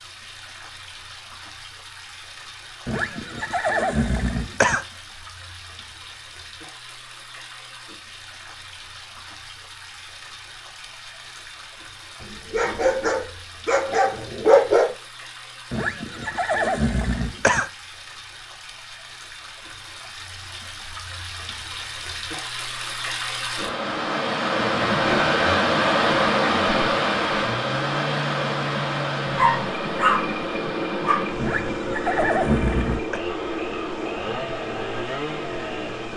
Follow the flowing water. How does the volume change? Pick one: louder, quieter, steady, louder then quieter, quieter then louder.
louder then quieter.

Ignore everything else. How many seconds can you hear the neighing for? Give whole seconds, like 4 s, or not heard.
6 s.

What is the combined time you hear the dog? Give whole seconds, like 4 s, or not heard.
5 s.